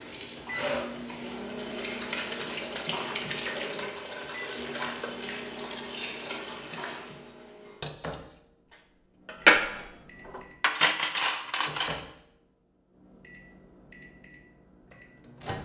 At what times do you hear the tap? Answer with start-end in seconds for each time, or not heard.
0.0-7.2.